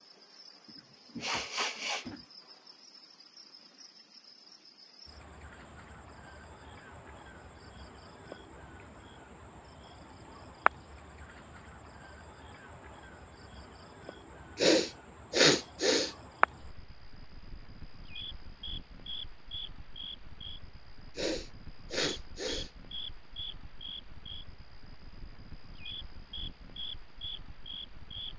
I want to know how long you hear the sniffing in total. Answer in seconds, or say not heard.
5 s.